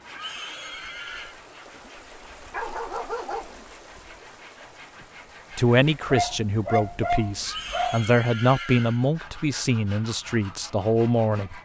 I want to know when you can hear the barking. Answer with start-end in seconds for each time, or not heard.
2.4-3.5, 6.0-8.1.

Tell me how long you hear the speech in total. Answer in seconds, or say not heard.
6 s.